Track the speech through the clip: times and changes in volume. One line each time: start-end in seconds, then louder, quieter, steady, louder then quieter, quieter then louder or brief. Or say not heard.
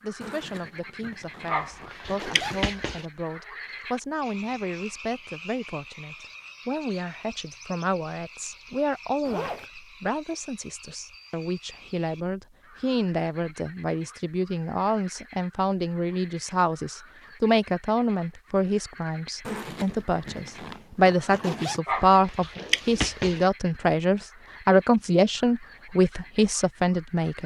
0.0-27.4 louder.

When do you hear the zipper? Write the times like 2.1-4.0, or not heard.
0.2-2.6, 9.2-9.7, 19.4-21.8.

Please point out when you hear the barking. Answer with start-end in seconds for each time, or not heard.
1.4-3.0, 21.9-23.4.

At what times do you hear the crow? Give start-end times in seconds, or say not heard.
not heard.